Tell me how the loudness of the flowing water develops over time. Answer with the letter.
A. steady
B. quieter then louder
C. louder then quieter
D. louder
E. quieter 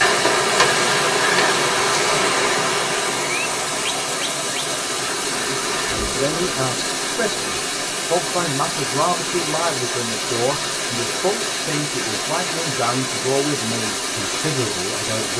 A.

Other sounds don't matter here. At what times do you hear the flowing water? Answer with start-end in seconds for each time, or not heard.
0.0-15.3.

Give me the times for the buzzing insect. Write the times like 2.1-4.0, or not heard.
0.0-6.7.